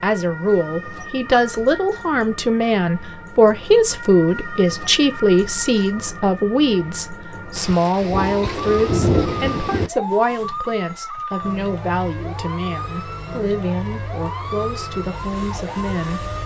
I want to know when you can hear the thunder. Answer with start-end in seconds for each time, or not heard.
7.5-9.9.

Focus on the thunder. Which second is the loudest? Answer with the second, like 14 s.
9 s.